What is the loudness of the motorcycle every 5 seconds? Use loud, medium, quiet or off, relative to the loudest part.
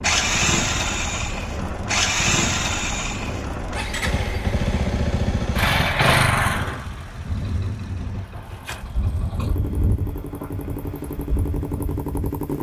loud, loud, medium.